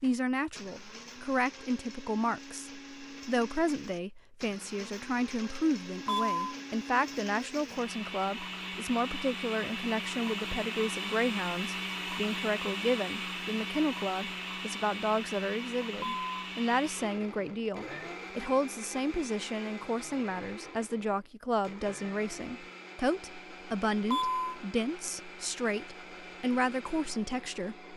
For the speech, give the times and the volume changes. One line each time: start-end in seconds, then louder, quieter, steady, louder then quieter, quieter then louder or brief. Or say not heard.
0.0-27.9 steady.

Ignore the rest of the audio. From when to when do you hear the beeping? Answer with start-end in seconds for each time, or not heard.
6.0-6.5, 16.0-16.5, 24.1-24.6.